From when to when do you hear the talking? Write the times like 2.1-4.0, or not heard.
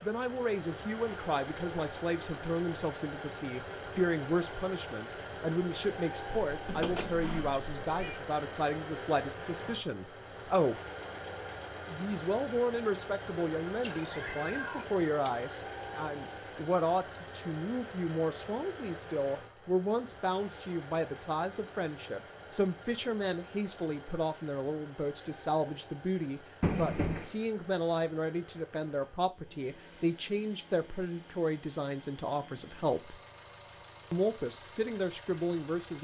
0.0-10.8, 11.8-33.1, 34.1-36.0.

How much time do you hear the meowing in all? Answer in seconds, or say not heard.
4 s.